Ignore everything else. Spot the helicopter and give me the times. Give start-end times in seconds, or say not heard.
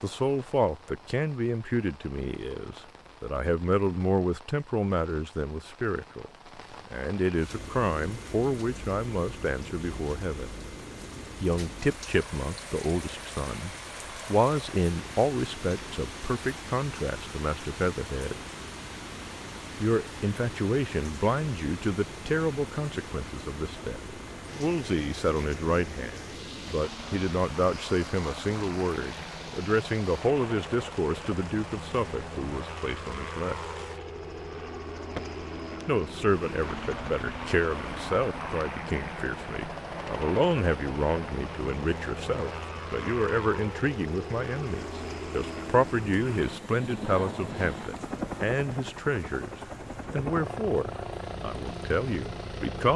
7.5-52.9.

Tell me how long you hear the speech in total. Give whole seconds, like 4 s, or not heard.
47 s.